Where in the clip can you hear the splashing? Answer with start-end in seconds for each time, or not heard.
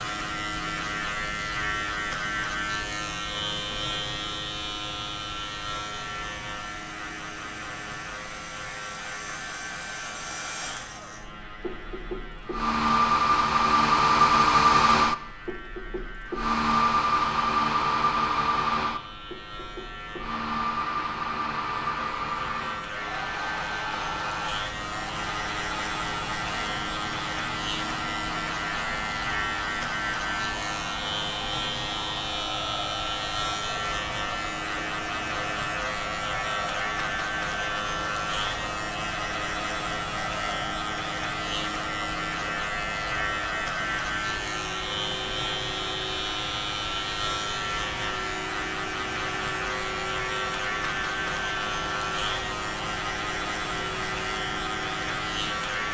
not heard.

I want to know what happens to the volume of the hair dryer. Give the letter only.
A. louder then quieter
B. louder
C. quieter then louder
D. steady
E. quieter
E.